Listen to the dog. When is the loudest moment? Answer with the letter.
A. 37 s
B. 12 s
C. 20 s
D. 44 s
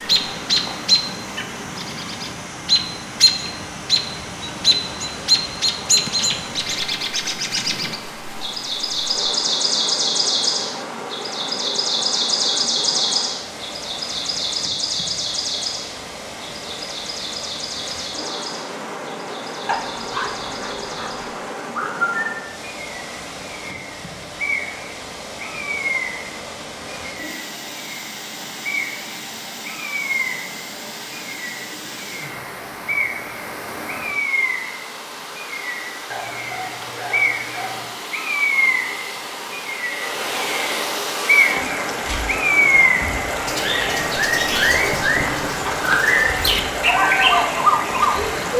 C.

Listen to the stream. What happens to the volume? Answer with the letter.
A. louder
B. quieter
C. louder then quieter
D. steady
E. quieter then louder
A.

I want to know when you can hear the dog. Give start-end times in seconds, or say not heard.
19.6-21.2, 36.1-38.0.